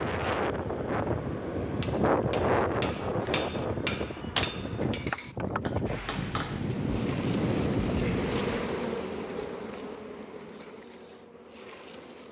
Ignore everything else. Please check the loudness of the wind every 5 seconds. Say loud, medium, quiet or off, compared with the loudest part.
loud, loud, off.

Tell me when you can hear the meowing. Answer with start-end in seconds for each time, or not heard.
4.2-5.1.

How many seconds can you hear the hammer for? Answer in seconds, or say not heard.
6 s.